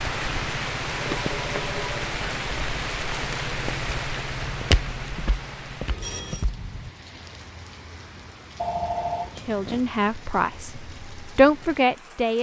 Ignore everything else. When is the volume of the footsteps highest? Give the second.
5 s.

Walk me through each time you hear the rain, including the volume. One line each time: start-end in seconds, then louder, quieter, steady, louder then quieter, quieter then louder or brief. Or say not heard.
0.0-12.3 quieter.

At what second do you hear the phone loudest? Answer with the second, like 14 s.
9 s.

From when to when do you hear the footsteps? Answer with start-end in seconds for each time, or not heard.
4.5-6.9.